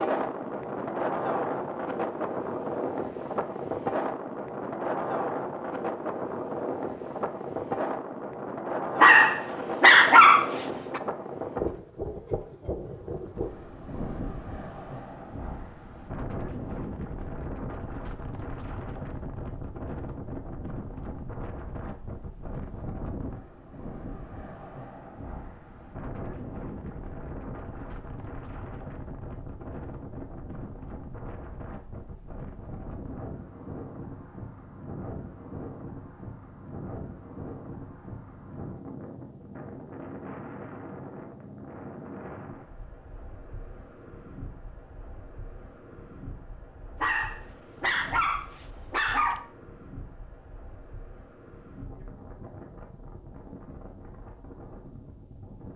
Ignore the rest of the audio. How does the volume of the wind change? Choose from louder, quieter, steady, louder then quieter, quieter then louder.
quieter.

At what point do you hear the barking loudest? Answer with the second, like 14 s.
10 s.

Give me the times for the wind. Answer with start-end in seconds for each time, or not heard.
0.0-55.7.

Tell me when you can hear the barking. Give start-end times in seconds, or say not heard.
9.0-11.0, 47.0-49.5.